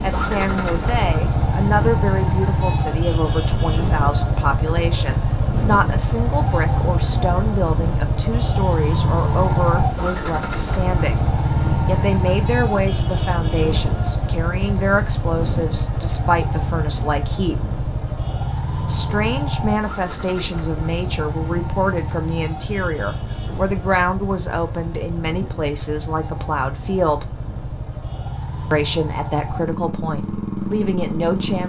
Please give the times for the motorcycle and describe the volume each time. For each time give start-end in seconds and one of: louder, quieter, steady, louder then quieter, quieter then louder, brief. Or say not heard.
0.0-31.6 quieter.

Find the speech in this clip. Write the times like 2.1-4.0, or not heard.
0.0-11.2, 11.8-17.6, 18.9-27.4, 28.7-31.6.